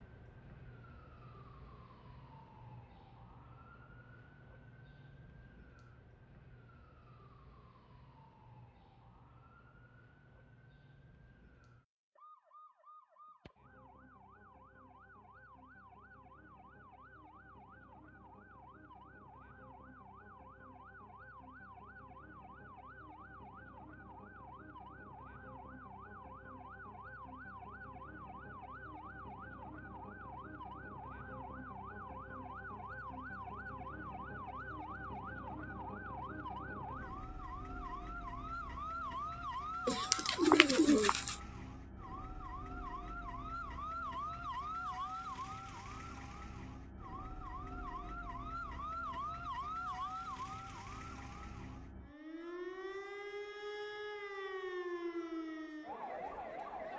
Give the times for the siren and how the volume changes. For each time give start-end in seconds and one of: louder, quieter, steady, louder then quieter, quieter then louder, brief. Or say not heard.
0.0-56.9 louder.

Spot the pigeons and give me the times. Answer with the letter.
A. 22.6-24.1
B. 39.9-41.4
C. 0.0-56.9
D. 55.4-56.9
B.